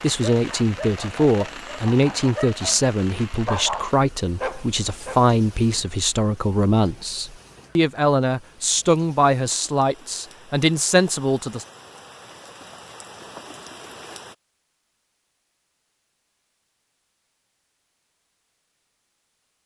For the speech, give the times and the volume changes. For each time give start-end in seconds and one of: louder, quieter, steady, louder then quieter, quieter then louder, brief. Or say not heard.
0.0-11.7 steady.